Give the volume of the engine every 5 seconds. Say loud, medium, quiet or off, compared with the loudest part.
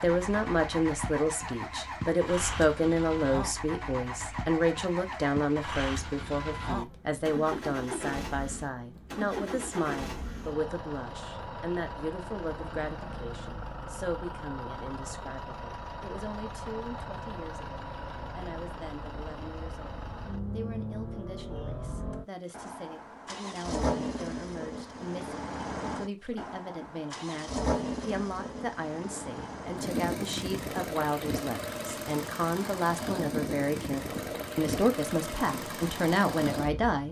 loud, loud, medium, medium, loud, loud, loud, loud.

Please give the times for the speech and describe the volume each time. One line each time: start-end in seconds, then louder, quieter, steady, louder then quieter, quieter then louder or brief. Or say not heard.
0.0-37.0 quieter then louder.